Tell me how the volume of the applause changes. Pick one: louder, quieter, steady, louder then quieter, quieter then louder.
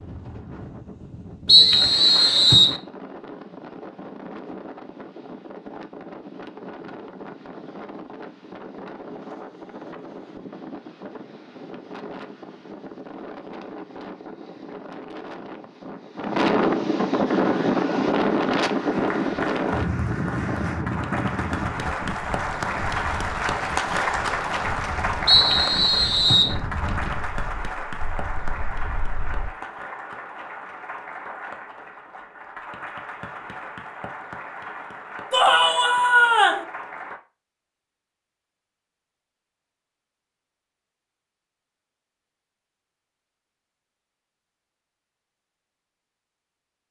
louder then quieter.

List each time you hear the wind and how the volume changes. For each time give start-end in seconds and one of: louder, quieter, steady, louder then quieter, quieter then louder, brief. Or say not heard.
0.0-29.5 louder then quieter.